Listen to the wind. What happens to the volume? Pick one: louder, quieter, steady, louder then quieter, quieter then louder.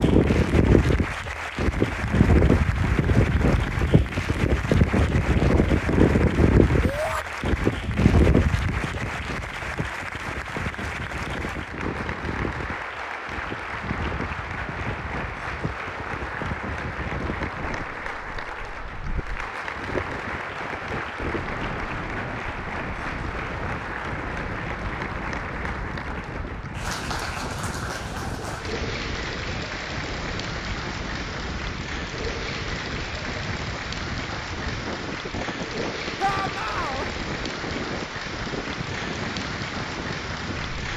quieter.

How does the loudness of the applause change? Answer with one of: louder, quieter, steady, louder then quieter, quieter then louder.
steady.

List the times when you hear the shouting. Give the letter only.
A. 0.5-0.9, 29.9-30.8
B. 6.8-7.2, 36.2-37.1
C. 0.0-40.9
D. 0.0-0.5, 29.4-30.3
B.